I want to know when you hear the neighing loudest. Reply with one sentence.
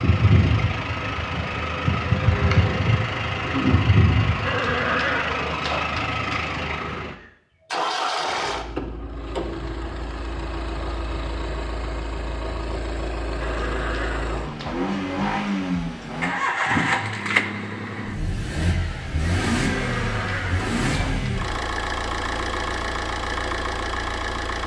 The loudest moment of the neighing is at 5 seconds.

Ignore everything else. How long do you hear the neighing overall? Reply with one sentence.
The neighing can be heard for 5 seconds in total.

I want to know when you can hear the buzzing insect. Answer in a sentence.
You can hear the buzzing insect from 0.0 to 4.7 s.